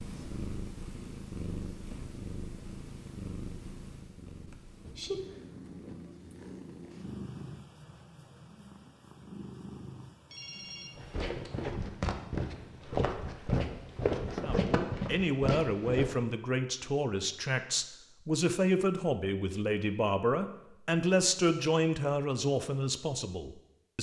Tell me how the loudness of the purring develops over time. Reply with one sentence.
The volume of the purring goes down.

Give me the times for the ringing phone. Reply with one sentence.
The ringing phone can be heard from 10.2 to 11.6 s.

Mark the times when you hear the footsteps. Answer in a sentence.
The footsteps can be heard from 10.9 to 16.1 s.